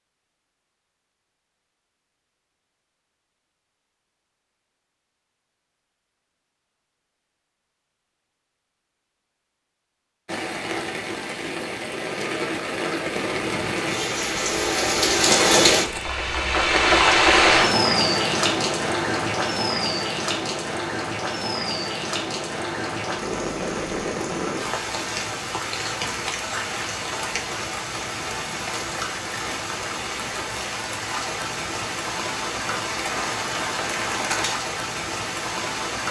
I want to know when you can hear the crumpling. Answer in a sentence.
You can hear the crumpling from 15.2 to 16.1 s.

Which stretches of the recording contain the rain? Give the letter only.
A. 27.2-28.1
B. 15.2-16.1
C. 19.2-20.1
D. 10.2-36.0
D.